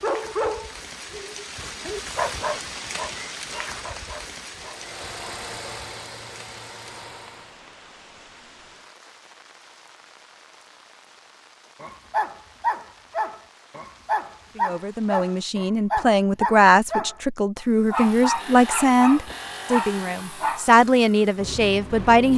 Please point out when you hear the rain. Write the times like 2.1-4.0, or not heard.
0.0-15.6.